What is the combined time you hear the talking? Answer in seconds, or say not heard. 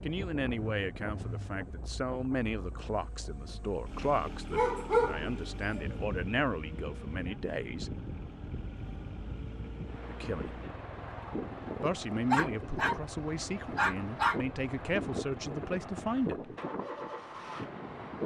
13 s.